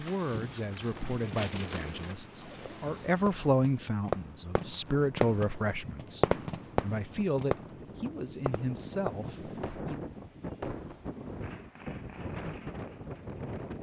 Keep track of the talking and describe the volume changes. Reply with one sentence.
The volume of the talking goes up, then down.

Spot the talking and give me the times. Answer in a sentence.
You can hear the talking from 0.0 to 10.0 s.